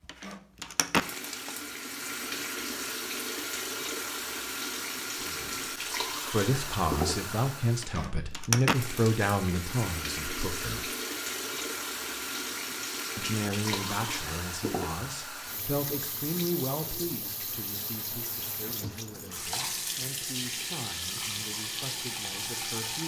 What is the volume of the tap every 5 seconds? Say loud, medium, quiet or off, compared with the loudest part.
loud, loud, loud, medium, loud.